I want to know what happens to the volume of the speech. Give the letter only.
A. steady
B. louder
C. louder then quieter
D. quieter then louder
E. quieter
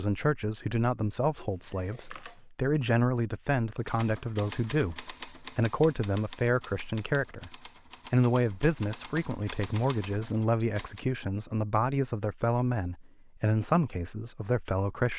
A.